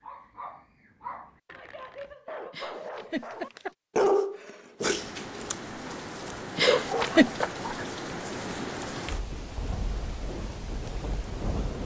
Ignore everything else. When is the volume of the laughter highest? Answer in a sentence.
The loudest moment of the laughter is at 7 seconds.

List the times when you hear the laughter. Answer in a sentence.
You can hear the laughter from 2.5 to 3.8 s and from 6.5 to 7.3 s.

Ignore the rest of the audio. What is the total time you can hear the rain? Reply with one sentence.
The rain can be heard for 7 seconds in total.